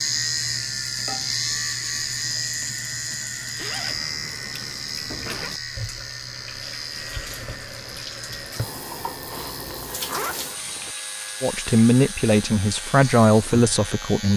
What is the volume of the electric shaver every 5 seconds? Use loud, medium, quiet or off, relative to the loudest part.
loud, medium, medium.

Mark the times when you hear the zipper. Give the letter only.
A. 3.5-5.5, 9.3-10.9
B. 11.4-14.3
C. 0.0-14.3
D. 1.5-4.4
A.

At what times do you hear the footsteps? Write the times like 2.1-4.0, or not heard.
not heard.